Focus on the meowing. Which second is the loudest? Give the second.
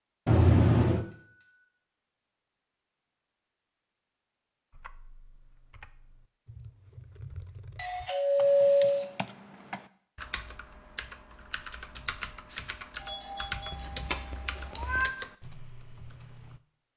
1 s.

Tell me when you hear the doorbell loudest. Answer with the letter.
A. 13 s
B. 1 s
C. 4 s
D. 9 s
D.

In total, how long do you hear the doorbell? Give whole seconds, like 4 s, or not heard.
5 s.